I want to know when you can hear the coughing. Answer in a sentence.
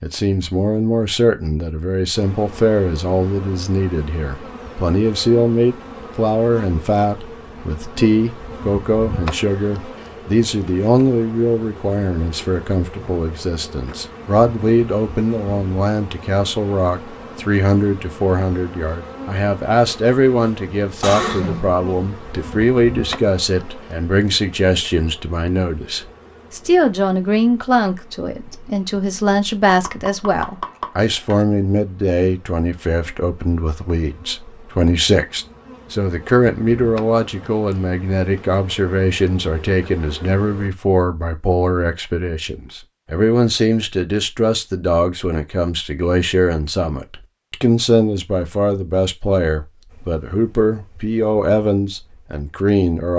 You can hear the coughing from 21.0 to 21.8 s.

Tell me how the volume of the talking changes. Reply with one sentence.
The loudness of the talking stays about the same.